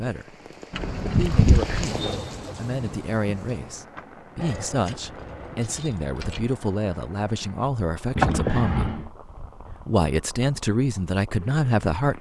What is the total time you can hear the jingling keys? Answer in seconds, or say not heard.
4 s.